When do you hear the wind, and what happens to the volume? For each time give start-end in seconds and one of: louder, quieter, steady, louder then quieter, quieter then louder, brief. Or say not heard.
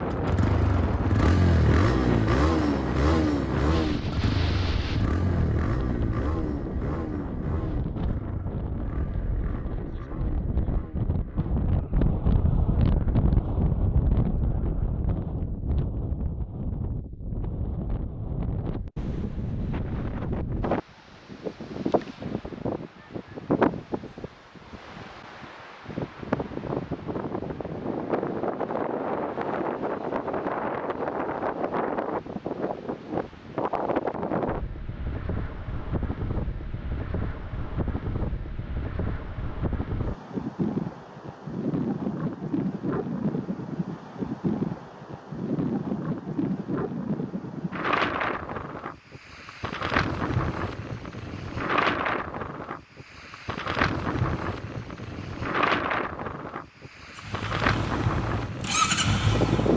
0.0-59.7 steady.